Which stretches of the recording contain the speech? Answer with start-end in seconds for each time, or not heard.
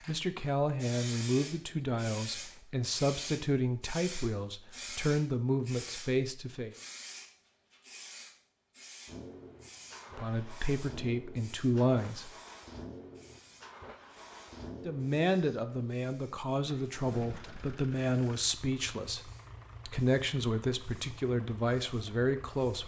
0.1-6.8, 10.2-12.3, 14.8-22.8.